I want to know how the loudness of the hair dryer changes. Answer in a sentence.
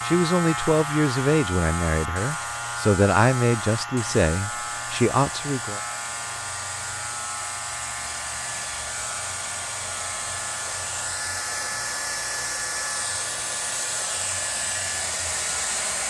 The loudness of the hair dryer goes up.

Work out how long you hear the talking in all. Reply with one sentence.
The talking can be heard for 6 seconds in total.